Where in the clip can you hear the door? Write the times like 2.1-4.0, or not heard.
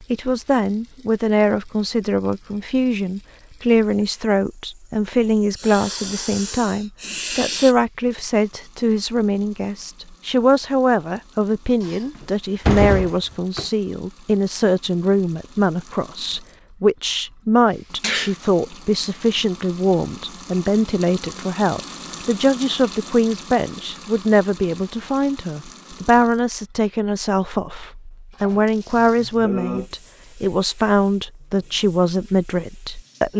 11.8-13.7.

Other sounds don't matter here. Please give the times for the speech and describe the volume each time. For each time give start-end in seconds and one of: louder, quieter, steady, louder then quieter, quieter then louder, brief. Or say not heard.
0.1-33.3 steady.